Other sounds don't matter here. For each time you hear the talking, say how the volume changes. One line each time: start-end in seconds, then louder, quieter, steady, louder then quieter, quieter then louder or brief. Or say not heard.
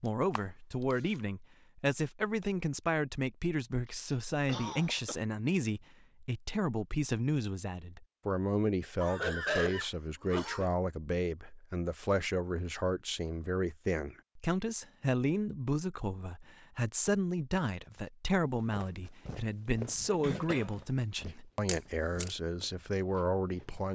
0.0-23.9 steady.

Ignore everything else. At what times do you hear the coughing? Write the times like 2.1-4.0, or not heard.
4.5-5.2, 9.0-10.7, 20.2-20.8.